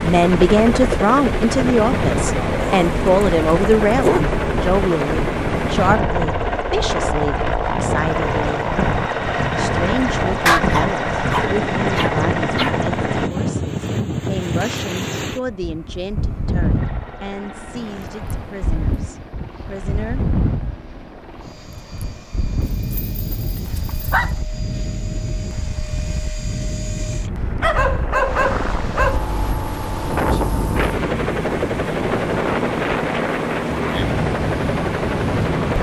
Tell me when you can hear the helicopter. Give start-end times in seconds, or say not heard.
0.0-13.3, 16.8-35.7.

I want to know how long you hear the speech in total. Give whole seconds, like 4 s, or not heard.
19 s.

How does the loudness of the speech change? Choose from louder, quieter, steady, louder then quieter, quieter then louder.
quieter.